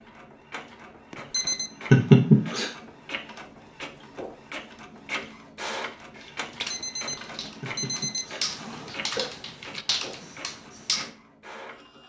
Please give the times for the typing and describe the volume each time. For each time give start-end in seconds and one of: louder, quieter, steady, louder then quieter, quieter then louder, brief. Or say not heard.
6.1-11.1 quieter then louder.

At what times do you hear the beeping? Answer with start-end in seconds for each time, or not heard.
1.1-1.7, 6.7-8.2.